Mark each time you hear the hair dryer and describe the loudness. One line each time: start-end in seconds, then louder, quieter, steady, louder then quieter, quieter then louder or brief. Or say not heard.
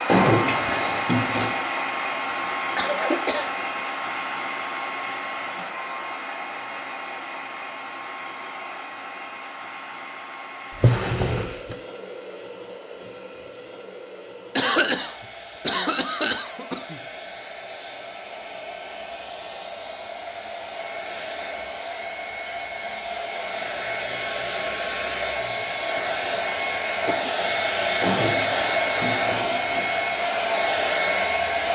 0.0-31.6 quieter then louder.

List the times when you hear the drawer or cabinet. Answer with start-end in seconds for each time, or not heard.
0.1-1.6, 10.8-11.8, 28.0-29.9.